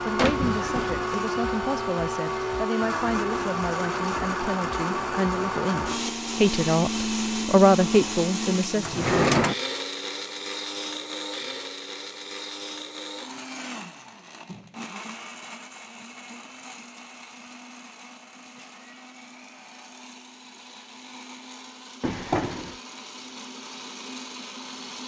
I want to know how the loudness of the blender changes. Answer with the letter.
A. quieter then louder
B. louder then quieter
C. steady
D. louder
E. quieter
E.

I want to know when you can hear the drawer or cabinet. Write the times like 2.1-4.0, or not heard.
0.1-1.0, 8.8-9.6, 22.0-22.8.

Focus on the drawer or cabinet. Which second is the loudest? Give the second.
9 s.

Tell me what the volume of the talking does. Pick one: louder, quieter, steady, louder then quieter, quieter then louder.
louder.